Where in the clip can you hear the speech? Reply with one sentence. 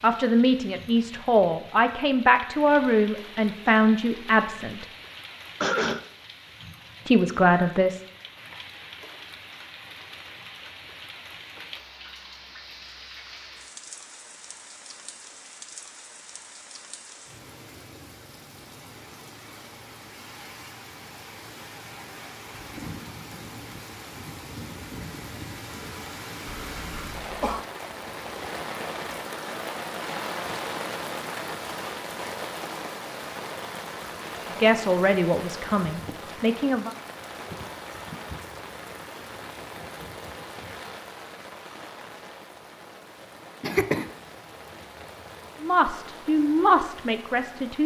You can hear the speech from 0.0 to 4.8 s, from 7.0 to 8.0 s, from 34.6 to 37.0 s and from 45.6 to 47.8 s.